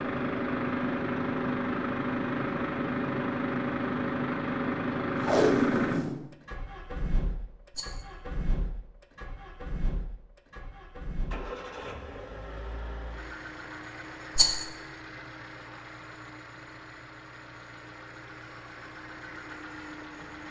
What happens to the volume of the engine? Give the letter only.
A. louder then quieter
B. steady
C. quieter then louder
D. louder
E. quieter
E.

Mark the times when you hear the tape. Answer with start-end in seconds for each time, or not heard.
5.2-6.2.